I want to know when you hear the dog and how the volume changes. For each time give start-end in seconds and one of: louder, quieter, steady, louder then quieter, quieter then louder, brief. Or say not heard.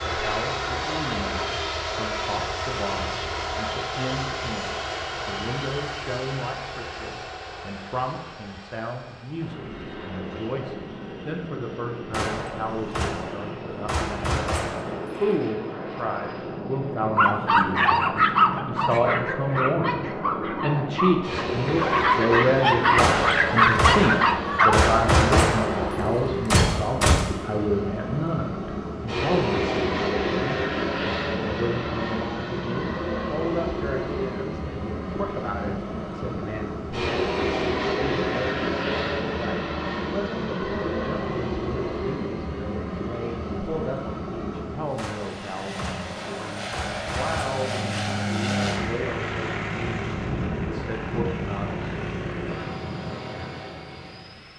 17.1-24.9 quieter then louder.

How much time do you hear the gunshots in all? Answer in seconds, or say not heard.
10 s.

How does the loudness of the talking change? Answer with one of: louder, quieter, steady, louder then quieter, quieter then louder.
louder then quieter.